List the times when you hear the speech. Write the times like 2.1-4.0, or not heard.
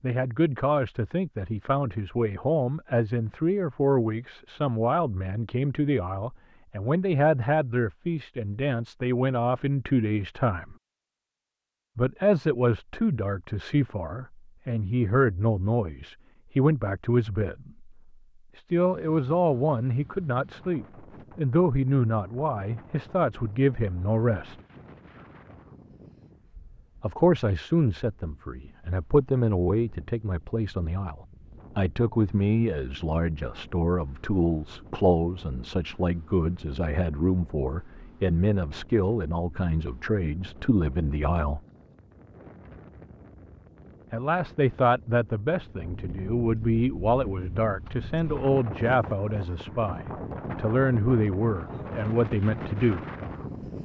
0.0-10.8, 11.9-17.9, 18.6-24.6, 27.0-41.6, 44.1-53.0.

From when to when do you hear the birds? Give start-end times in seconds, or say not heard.
not heard.